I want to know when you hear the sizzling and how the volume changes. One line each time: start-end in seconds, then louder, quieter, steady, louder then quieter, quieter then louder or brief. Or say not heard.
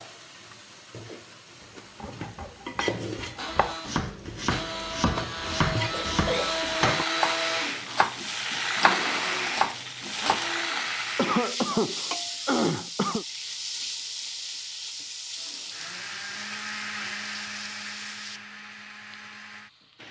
0.0-20.0 louder then quieter.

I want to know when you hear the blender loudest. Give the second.
7 s.